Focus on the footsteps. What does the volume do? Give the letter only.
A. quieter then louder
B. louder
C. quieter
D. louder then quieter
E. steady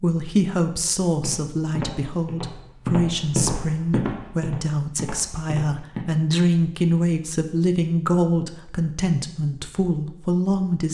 D.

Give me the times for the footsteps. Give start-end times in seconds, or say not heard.
1.1-6.0.